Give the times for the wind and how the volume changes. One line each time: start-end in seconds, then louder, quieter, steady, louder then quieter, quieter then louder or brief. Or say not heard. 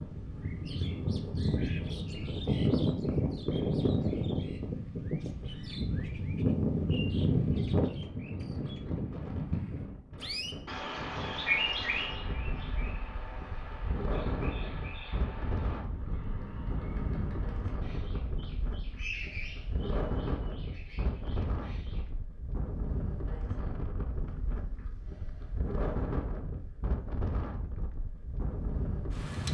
0.0-29.4 louder.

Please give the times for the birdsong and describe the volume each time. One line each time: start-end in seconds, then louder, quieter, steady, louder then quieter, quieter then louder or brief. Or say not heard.
0.0-22.1 quieter.